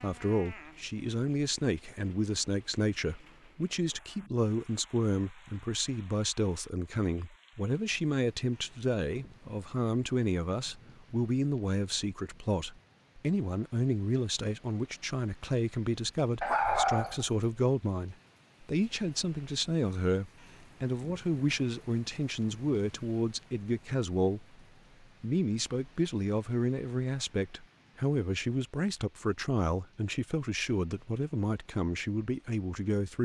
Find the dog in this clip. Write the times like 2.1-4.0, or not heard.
16.4-17.4.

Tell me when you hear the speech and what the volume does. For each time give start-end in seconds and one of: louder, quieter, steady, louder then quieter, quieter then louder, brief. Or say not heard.
0.0-24.6 steady
25.2-33.2 steady.